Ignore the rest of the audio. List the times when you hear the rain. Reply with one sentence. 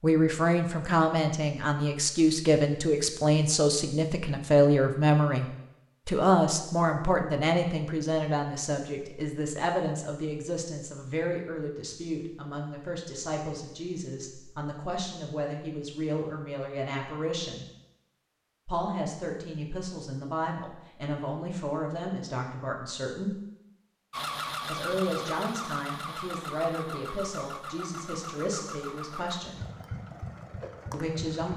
You can't hear the rain here.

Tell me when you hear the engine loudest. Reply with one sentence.
The loudest moment of the engine is at 25 seconds.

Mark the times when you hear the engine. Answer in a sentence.
You can hear the engine from 24.1 to 31.5 s.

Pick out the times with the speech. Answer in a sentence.
You can hear the speech from 0.0 to 5.5 s, from 6.0 to 17.6 s, from 18.6 to 23.4 s, from 24.6 to 29.6 s and from 30.9 to 31.5 s.